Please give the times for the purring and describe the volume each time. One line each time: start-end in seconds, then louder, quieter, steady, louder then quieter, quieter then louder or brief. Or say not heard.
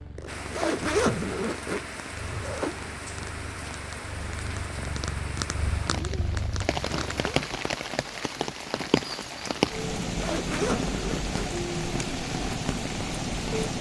0.0-7.3 louder.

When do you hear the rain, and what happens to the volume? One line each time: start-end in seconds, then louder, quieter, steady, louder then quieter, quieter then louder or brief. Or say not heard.
0.0-13.7 louder.